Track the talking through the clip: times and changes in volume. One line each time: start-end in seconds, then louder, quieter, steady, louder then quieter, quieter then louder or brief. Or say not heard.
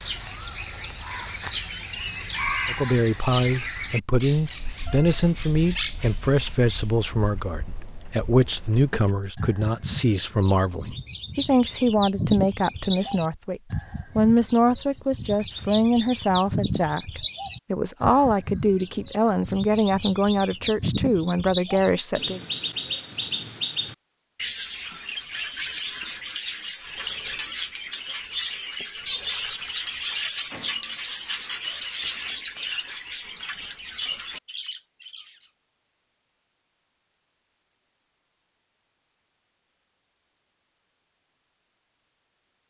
2.6-22.4 steady.